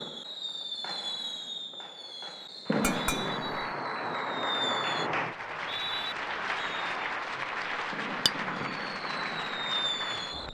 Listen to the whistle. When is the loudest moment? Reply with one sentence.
The volume of the whistle peaks at 6 seconds.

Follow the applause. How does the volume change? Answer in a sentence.
The loudness of the applause stays about the same.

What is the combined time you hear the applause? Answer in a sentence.
The applause can be heard for 8 seconds in total.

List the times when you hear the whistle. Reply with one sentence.
You can hear the whistle from 2.6 to 3.4 s and from 5.4 to 6.2 s.